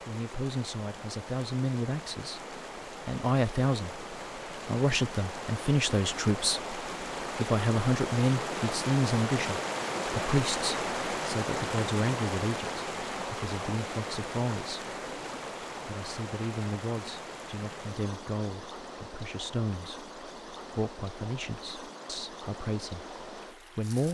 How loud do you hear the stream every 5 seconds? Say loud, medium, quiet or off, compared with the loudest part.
medium, loud, loud, medium, medium.